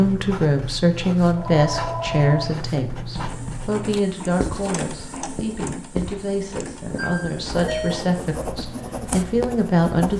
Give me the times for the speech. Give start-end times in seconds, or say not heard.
0.0-10.1.